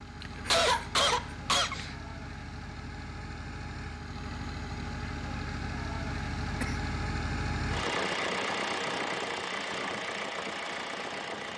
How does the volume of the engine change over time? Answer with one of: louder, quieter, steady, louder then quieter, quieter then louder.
louder.